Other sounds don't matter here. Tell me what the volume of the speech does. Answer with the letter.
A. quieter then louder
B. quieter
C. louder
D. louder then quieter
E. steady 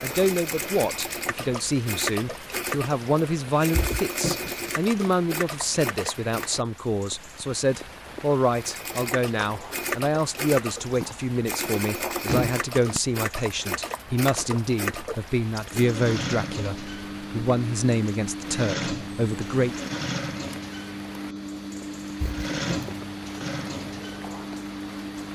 E.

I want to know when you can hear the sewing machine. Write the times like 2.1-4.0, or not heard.
0.0-6.7, 8.5-25.3.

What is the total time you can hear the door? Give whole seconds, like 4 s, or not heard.
2 s.